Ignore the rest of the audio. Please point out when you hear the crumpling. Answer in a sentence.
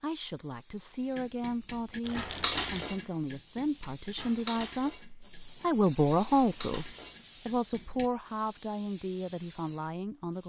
You can hear the crumpling from 2.0 to 3.0 s.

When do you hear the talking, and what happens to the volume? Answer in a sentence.
The talking can be heard from 0.0 to 10.4 s, getting louder then quieter.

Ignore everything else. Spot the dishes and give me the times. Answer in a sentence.
You can hear the dishes from 1.1 to 8.1 s.